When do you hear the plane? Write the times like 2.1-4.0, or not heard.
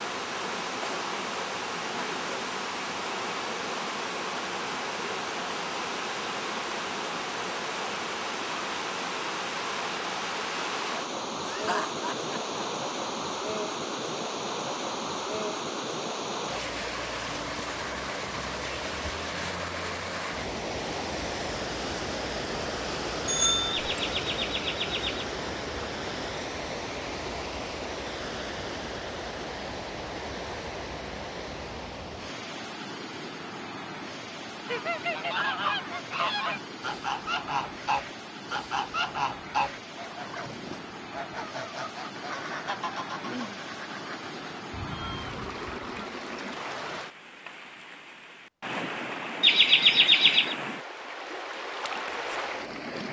not heard.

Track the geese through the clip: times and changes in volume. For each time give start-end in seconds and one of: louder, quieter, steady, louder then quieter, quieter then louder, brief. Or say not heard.
34.6-46.1 quieter.